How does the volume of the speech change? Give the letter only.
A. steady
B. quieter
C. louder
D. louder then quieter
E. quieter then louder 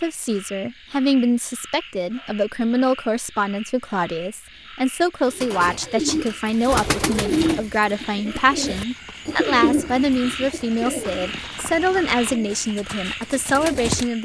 A.